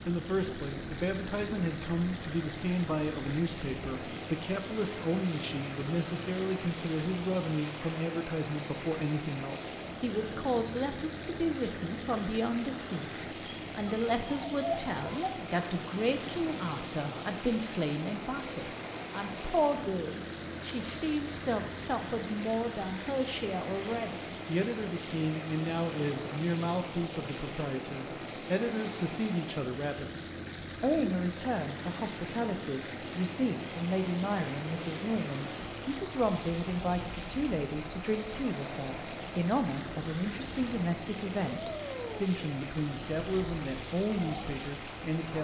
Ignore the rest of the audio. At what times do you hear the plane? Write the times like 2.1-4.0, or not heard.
0.0-45.3.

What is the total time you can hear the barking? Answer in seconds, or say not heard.
2 s.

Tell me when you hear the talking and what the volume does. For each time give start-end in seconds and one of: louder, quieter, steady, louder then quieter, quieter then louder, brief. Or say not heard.
0.1-13.1 steady
13.7-45.3 steady.